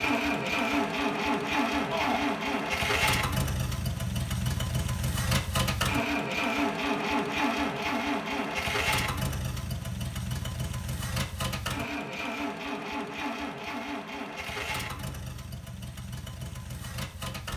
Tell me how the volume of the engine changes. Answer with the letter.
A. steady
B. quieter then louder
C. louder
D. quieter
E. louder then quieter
D.